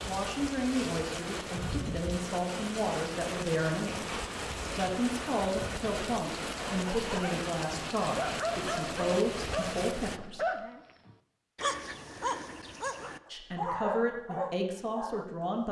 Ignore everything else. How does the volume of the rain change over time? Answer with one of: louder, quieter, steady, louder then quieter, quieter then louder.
steady.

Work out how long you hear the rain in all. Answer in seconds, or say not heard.
10 s.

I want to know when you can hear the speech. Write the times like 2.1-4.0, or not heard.
0.1-10.5, 13.3-15.6.